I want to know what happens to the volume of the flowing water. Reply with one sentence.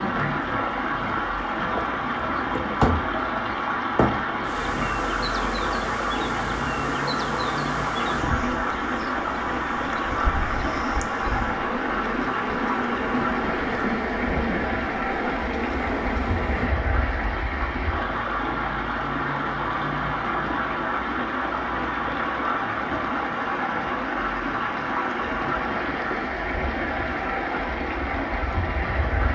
The volume of the flowing water stays about the same.